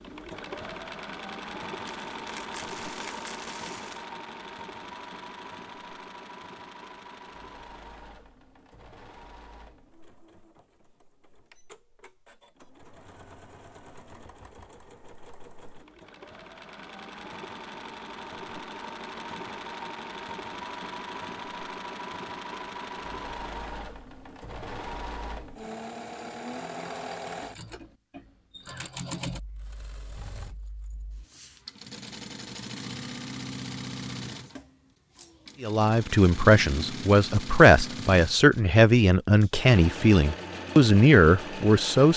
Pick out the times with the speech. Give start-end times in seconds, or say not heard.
35.6-42.1.